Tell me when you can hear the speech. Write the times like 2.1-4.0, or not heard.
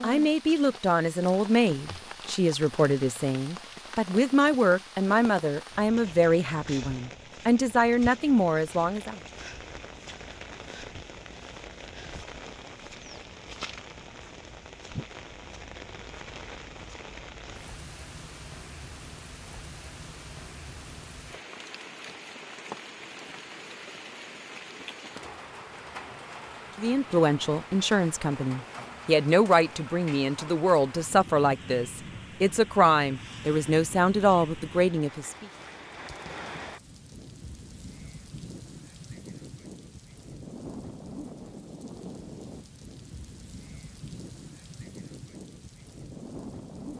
0.0-9.2, 26.8-35.5.